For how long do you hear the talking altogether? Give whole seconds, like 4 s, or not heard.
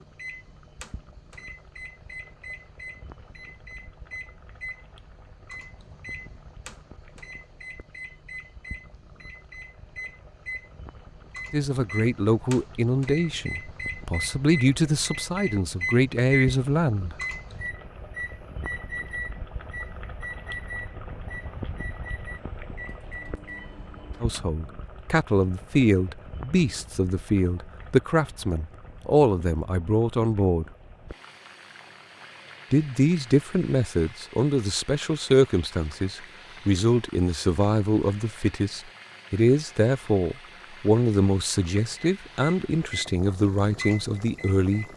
24 s.